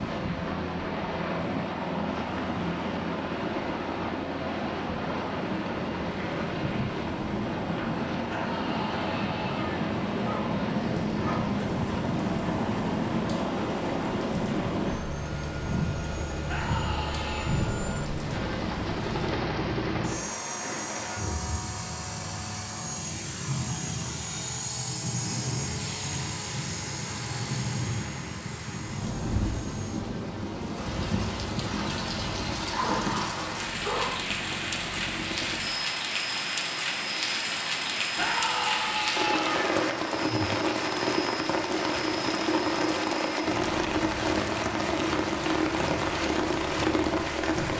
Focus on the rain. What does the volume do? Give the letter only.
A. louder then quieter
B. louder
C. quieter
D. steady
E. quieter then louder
B.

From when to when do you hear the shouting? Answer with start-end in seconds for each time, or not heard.
8.2-9.9, 16.4-17.6, 38.1-39.8.